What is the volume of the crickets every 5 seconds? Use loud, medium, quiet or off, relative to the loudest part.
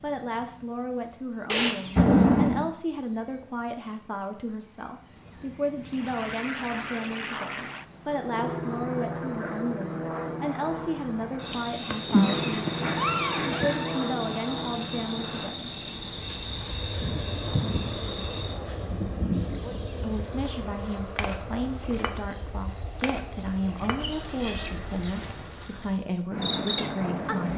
medium, loud, loud, loud, loud, loud.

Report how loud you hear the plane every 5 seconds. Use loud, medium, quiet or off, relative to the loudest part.
off, loud, loud, medium, medium, loud.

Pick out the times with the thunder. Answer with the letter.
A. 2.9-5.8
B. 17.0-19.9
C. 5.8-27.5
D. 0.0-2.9
B.